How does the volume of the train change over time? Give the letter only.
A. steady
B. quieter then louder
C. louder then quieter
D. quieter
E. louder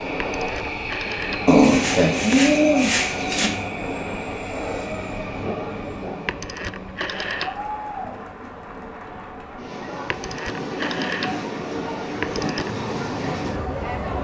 B.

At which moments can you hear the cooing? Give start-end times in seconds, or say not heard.
1.4-3.5.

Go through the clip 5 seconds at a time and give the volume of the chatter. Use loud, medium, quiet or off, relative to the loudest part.
off, loud, loud.